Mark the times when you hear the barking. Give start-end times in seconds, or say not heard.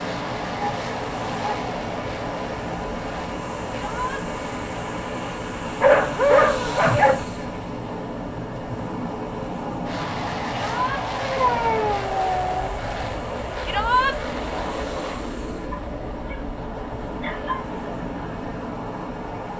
0.6-1.6, 5.8-7.2, 11.2-12.8, 15.7-16.4, 17.2-17.6.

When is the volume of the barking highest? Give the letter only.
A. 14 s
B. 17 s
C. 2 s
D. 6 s
D.